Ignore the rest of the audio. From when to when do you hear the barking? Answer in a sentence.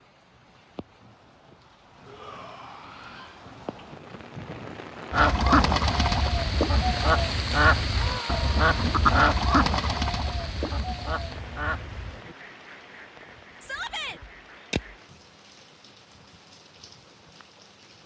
The barking can't be heard in this clip.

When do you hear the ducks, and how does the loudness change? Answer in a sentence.
You can hear the ducks from 5.1 to 14.9 s, getting quieter.